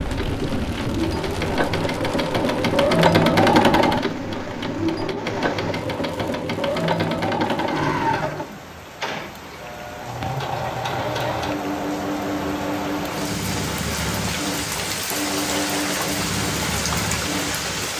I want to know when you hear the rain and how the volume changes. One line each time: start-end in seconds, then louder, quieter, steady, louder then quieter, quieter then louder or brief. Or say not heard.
0.0-17.9 quieter then louder.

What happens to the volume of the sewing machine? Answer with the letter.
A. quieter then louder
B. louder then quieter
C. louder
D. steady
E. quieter
E.